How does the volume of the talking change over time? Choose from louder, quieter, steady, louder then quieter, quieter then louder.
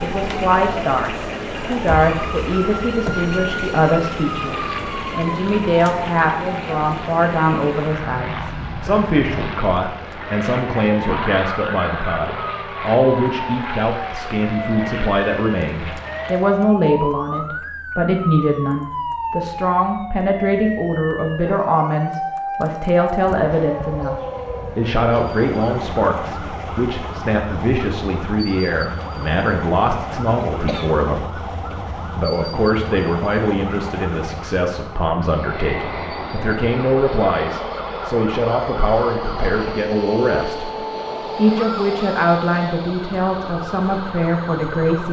steady.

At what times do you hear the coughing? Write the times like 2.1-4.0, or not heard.
30.4-30.9.